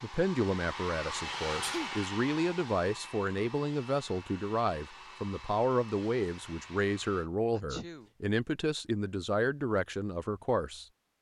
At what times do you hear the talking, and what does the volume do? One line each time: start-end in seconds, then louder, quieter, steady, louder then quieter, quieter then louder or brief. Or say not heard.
0.0-11.1 steady.